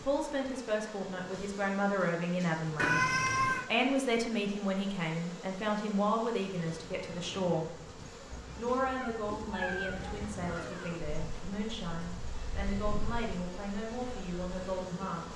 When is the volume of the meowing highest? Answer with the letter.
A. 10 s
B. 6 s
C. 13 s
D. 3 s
D.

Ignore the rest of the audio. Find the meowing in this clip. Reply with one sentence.
You can hear the meowing from 2.8 to 3.6 s and from 8.9 to 11.0 s.